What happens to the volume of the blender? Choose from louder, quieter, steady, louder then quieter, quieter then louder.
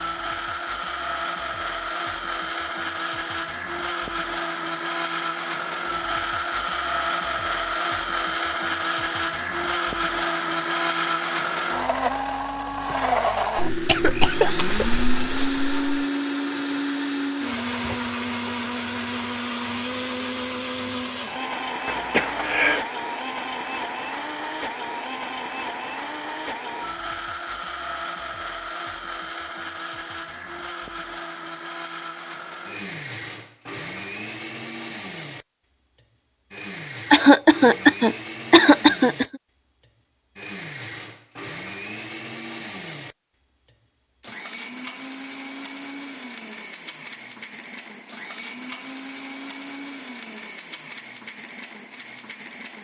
quieter.